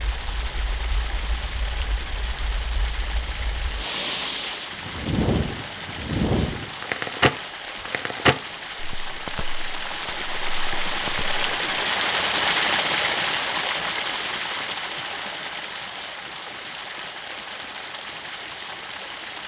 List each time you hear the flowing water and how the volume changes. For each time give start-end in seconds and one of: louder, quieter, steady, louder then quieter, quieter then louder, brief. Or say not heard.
0.0-19.4 louder then quieter.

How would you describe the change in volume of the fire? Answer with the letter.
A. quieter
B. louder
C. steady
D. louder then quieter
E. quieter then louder
D.